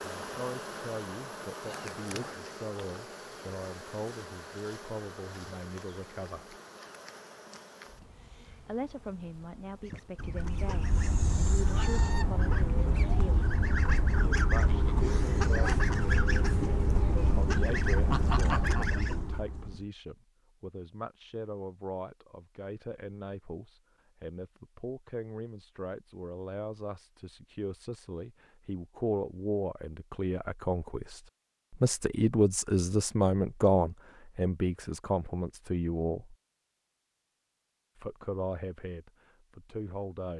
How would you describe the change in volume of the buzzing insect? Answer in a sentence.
The volume of the buzzing insect goes down.